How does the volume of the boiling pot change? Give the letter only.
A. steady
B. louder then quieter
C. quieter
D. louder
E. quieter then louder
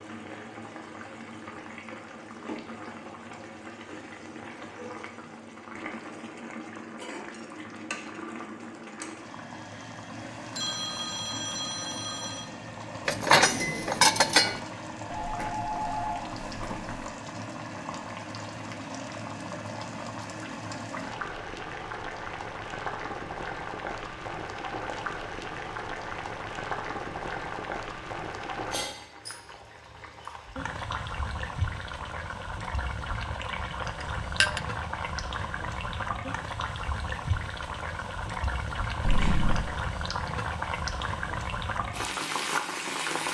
D.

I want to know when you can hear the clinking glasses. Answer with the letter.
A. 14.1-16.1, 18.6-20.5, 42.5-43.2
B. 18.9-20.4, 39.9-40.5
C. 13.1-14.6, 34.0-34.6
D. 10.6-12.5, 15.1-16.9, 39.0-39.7
C.